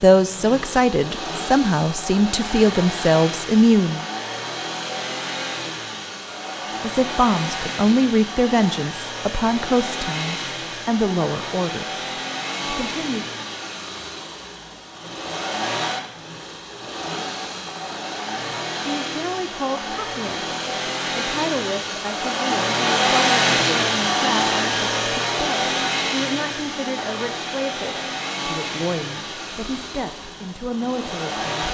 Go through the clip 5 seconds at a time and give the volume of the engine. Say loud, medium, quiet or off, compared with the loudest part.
medium, medium, medium, medium, loud, medium, medium.